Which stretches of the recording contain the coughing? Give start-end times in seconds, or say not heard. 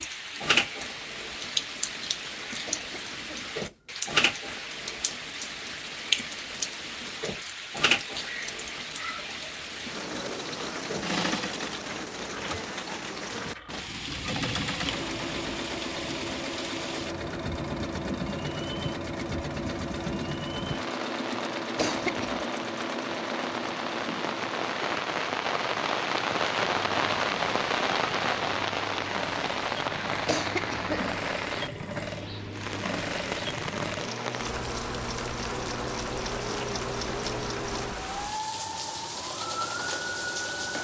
2.6-3.5, 21.8-22.5, 30.2-31.1.